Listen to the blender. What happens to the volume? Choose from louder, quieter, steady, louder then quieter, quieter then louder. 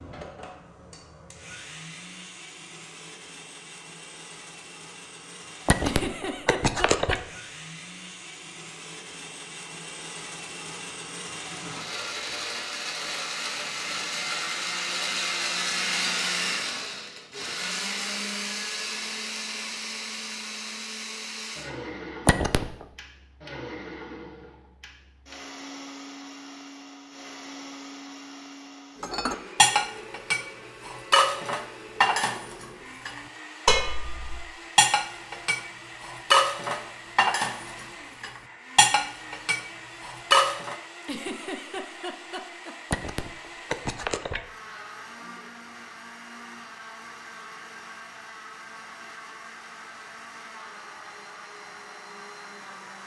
louder then quieter.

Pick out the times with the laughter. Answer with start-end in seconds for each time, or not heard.
5.8-7.2, 41.0-42.8.